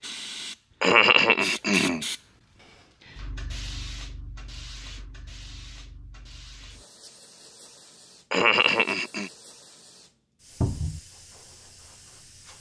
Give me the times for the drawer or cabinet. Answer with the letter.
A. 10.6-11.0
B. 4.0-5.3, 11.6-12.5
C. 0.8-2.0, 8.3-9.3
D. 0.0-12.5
A.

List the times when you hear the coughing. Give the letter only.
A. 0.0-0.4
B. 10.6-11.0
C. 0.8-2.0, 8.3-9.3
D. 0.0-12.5
C.